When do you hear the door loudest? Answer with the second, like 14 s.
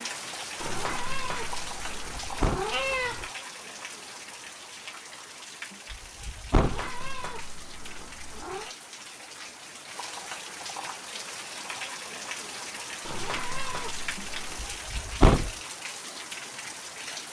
15 s.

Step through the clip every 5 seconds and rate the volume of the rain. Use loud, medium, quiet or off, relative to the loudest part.
loud, medium, loud, loud.